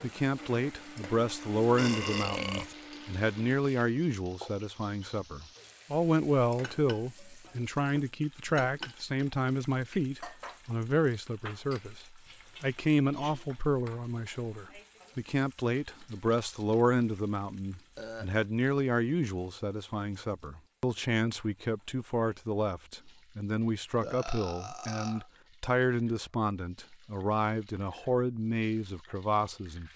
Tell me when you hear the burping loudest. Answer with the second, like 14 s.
2 s.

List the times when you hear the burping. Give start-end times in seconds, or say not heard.
1.8-2.8, 17.9-18.4, 24.0-25.3.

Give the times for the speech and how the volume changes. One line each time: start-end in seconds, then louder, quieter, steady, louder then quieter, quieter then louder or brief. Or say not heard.
0.0-29.9 steady.